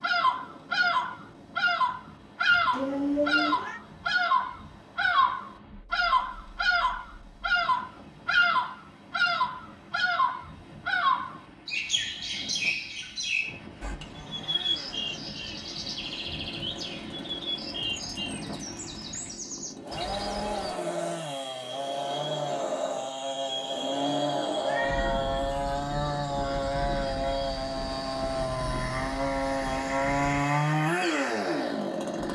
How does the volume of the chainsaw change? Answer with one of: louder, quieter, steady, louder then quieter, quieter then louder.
louder.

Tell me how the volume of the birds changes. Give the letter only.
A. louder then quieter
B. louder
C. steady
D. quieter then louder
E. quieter
E.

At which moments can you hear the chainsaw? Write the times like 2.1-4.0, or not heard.
14.0-32.3.